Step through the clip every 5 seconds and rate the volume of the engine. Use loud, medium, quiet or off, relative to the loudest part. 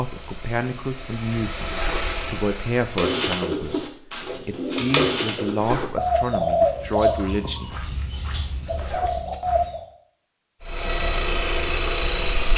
medium, off, loud.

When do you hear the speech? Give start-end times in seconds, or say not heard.
0.0-7.8.